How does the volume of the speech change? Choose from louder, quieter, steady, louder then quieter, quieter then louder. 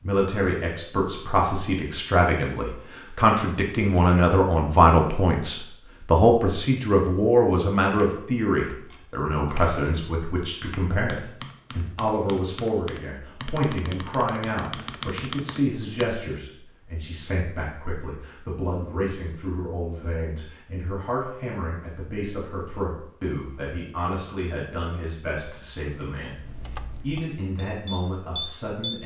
quieter.